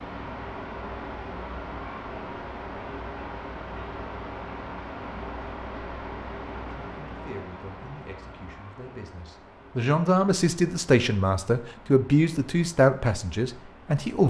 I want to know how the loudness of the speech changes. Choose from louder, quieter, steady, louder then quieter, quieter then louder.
louder.